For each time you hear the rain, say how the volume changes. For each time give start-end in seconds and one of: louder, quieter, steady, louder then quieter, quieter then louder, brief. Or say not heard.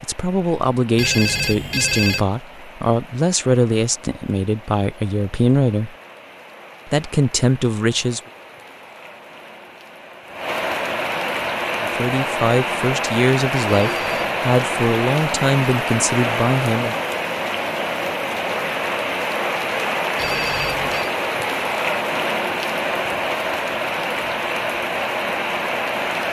0.0-26.2 louder.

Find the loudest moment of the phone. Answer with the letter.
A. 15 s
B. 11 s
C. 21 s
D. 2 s
D.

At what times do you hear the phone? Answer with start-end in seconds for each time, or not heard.
0.9-2.2, 13.8-14.3, 20.1-21.1.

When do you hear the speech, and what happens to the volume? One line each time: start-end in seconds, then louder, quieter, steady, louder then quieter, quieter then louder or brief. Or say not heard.
0.0-6.0 steady
6.8-8.2 brief
11.8-16.9 steady.